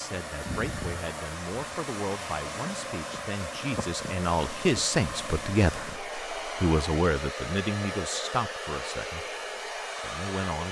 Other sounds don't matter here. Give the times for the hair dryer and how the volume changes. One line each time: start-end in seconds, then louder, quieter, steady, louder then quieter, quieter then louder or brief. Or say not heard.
0.0-10.6 steady.